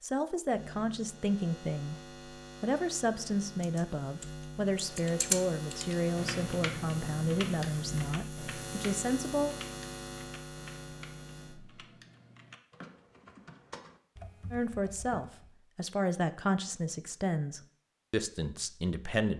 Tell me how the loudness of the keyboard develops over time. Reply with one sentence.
The loudness of the keyboard goes down.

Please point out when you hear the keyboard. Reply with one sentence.
You can hear the keyboard from 3.6 to 15.5 s.